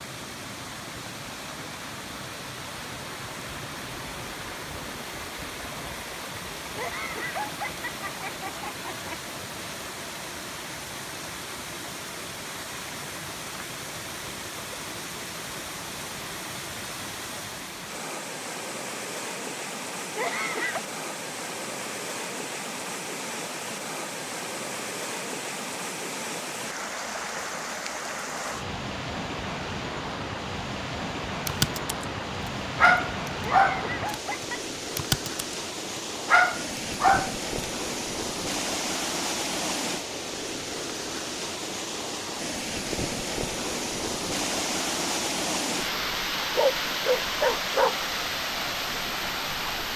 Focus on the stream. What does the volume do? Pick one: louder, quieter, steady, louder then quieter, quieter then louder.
louder.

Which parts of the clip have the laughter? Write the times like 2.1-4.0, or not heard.
6.8-9.2, 20.1-20.8, 33.4-34.6.